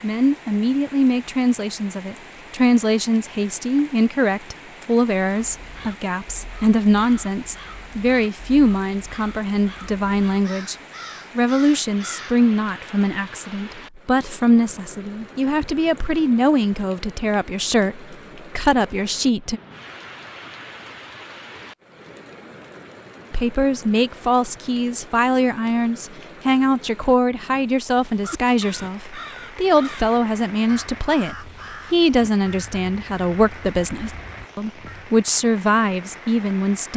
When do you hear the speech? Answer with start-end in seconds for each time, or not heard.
0.0-10.8, 11.3-19.6, 23.3-36.9.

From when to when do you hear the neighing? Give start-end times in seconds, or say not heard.
not heard.